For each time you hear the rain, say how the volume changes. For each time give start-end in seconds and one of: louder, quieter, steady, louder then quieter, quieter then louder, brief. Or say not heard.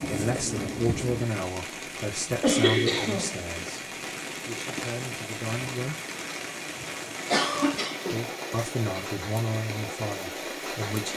0.0-11.1 steady.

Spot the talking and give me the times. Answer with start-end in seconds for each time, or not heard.
0.1-6.0, 8.1-11.1.